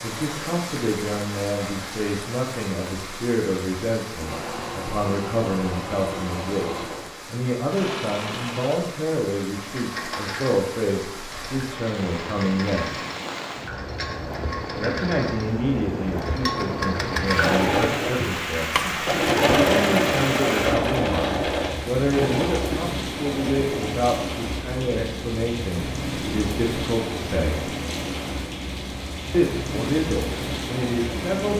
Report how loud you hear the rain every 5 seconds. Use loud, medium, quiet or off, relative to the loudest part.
medium, medium, medium, loud, loud, loud, loud.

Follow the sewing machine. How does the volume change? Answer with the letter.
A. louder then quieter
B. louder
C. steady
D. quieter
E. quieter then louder
B.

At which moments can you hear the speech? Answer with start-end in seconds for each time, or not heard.
0.0-13.1, 14.8-18.9, 19.6-21.2, 21.9-27.7, 29.3-31.5.